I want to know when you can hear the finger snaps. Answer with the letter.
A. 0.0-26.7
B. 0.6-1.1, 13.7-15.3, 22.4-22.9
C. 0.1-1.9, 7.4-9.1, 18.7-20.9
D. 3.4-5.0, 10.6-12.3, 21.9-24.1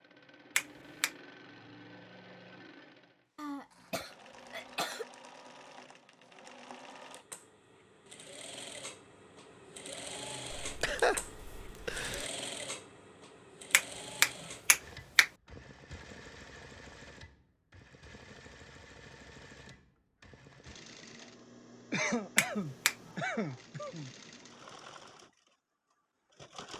B.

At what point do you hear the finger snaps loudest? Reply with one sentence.
The volume of the finger snaps peaks at 14 seconds.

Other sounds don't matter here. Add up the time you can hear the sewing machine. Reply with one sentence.
The sewing machine can be heard for 27 seconds in total.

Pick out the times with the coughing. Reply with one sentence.
The coughing can be heard from 3.4 to 5.0 s, from 10.6 to 12.3 s and from 21.9 to 24.1 s.